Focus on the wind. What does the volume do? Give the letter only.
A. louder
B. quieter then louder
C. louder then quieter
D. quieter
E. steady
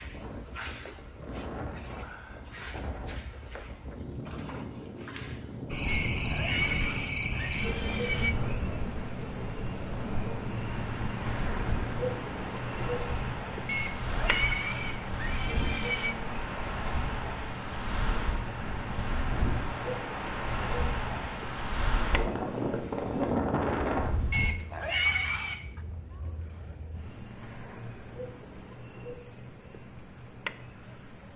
A.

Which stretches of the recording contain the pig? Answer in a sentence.
The pig can be heard from 5.8 to 8.3 s, from 13.7 to 16.1 s and from 24.3 to 25.6 s.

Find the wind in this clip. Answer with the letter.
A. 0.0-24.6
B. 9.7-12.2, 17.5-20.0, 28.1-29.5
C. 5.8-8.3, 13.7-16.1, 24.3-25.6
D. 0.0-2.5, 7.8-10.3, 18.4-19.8
A.